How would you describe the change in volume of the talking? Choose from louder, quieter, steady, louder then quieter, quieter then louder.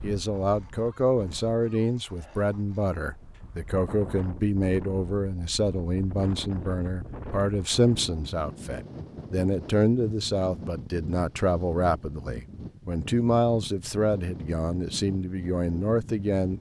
steady.